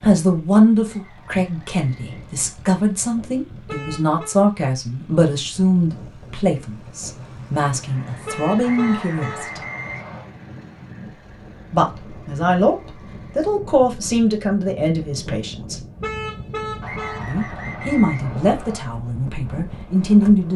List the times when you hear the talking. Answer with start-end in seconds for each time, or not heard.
0.0-9.6, 11.7-15.8, 17.2-20.5.